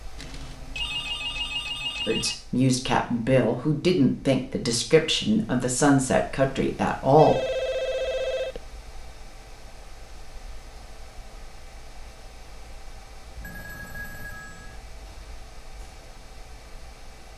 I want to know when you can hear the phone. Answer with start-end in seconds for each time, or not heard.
0.1-2.4, 7.2-8.6, 13.4-14.8.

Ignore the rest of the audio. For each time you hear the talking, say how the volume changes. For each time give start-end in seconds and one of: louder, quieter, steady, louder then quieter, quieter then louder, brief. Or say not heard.
2.0-7.3 steady.